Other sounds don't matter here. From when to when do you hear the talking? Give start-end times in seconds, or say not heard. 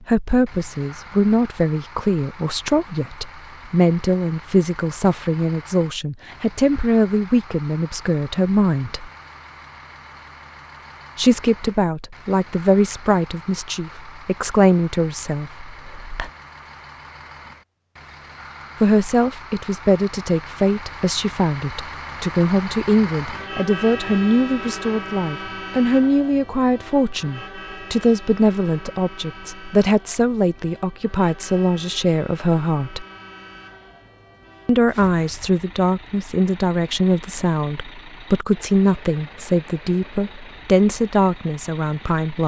0.1-9.1, 11.2-16.3, 18.8-33.0, 34.6-42.4.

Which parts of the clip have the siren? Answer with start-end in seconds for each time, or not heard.
not heard.